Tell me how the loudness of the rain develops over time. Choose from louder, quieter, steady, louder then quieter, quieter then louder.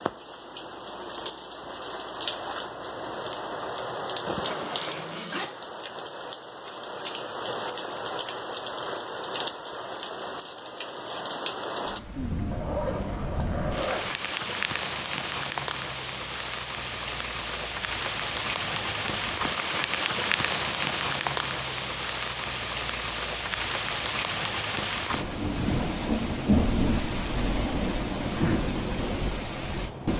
louder.